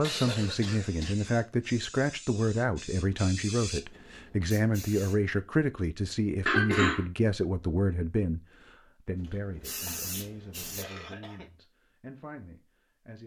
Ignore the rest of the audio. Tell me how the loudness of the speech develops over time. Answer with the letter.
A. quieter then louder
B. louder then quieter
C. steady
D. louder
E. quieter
E.